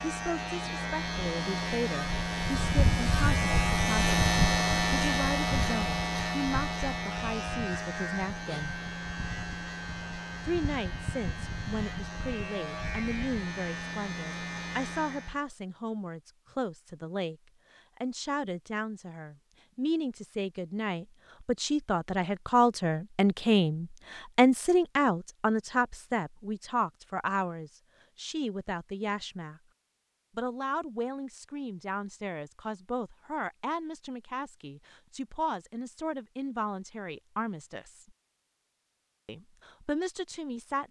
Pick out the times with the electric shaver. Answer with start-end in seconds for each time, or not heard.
0.0-15.4.